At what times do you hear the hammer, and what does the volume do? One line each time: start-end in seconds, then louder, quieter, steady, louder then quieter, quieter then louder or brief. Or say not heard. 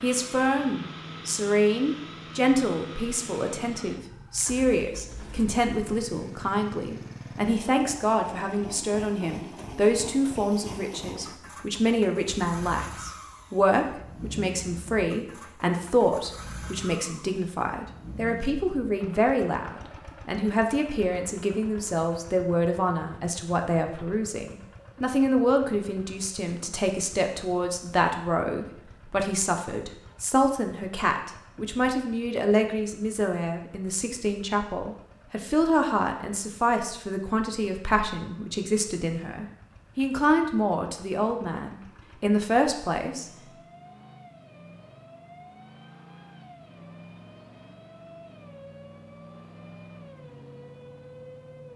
not heard.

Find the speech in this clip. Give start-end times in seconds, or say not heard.
0.0-43.3.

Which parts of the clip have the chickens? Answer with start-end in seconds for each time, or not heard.
not heard.